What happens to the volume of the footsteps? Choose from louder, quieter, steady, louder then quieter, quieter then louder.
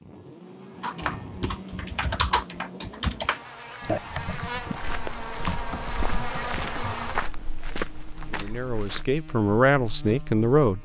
louder then quieter.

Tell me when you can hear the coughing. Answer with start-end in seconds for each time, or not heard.
not heard.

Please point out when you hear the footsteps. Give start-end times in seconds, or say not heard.
4.8-9.1.